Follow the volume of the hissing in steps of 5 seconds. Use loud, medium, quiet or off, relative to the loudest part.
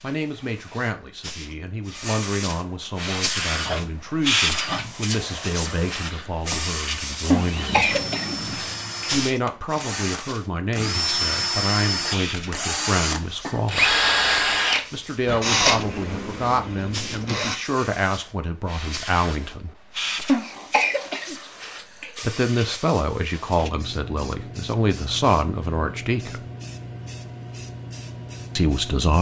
loud, loud, medium, medium, medium, medium.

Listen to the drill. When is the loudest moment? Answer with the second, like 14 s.
14 s.